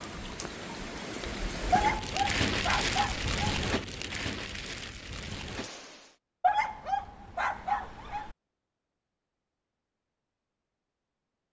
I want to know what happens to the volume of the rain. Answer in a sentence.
The loudness of the rain goes up, then down.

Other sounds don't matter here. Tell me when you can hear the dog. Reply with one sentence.
You can hear the dog from 1.7 to 3.4 s and from 6.4 to 8.3 s.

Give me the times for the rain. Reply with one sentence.
The rain can be heard from 0.0 to 6.2 s.